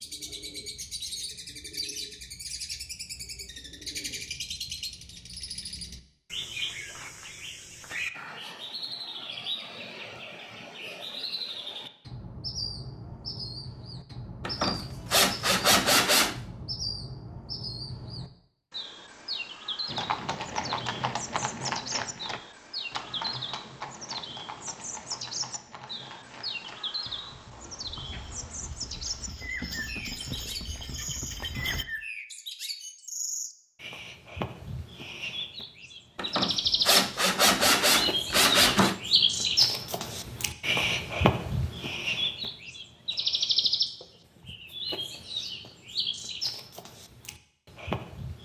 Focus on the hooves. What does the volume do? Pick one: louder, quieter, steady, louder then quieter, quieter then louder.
quieter then louder.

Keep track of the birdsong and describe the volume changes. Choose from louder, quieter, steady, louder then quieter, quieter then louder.
louder.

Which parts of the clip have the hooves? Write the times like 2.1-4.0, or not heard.
19.9-31.9.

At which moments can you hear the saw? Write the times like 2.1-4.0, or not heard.
14.4-16.4, 36.1-39.0.